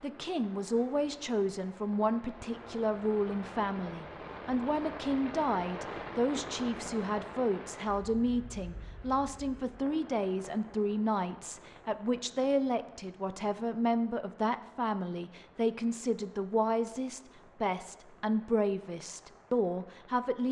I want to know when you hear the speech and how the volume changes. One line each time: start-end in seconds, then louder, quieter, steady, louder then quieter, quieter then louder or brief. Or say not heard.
0.0-20.4 steady.